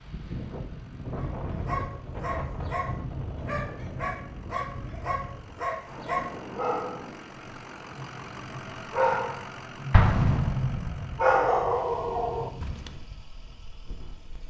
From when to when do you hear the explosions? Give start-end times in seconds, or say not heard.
9.9-11.2.